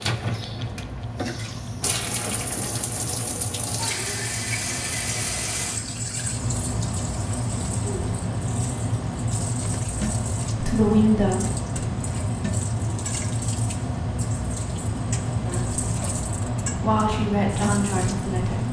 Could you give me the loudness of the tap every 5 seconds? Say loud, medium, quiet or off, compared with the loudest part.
loud, medium, medium, medium.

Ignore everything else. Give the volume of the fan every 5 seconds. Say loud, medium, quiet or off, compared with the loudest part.
medium, loud, loud, loud.